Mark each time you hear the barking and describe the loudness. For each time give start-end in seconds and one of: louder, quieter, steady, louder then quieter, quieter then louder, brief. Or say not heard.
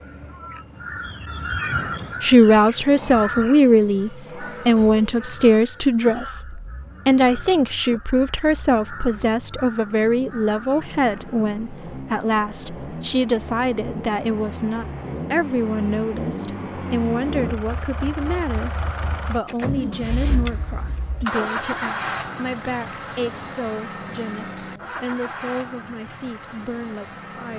not heard.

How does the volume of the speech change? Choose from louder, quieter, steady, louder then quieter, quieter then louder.
quieter.